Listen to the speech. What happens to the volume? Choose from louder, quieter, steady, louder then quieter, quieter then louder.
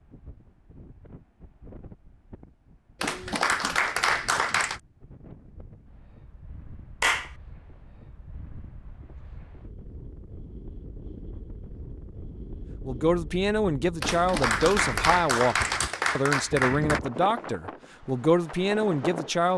steady.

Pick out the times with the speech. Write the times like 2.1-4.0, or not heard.
12.8-19.5.